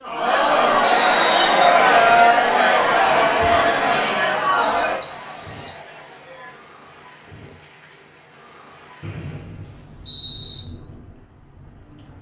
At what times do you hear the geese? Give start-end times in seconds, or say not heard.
not heard.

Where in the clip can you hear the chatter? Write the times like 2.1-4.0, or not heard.
0.0-6.7.